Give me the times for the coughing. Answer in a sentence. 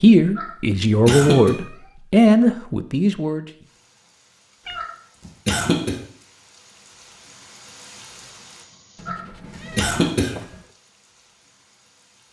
The coughing can be heard from 0.3 to 1.5 s, from 4.8 to 6.0 s and from 9.1 to 10.3 s.